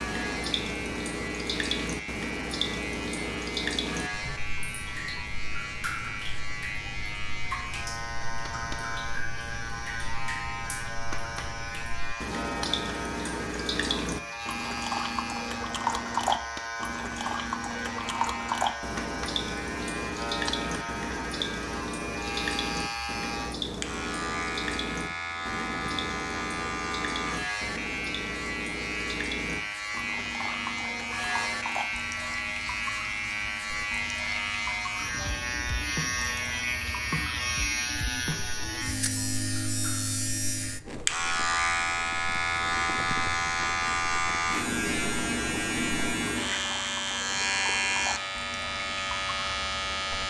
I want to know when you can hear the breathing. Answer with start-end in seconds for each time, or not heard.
not heard.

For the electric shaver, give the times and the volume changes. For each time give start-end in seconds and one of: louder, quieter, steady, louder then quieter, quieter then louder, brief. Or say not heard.
0.0-50.2 louder.